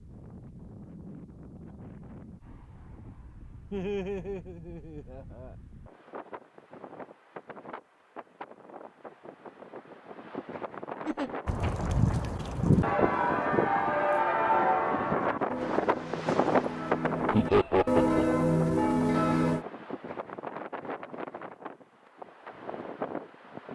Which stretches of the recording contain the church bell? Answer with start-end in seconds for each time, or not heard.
11.4-19.6.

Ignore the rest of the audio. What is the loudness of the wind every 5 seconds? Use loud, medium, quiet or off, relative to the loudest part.
quiet, quiet, medium, loud, medium.